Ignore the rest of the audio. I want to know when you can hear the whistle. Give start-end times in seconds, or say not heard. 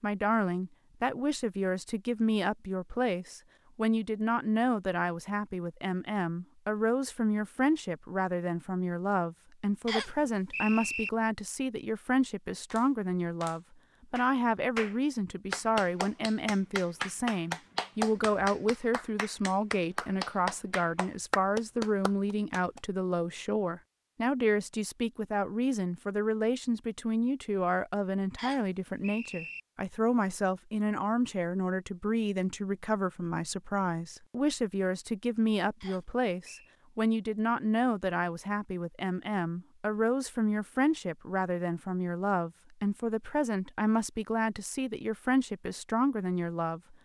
9.8-11.1, 28.4-29.6, 35.8-36.8.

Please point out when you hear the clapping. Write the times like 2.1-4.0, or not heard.
12.7-22.8.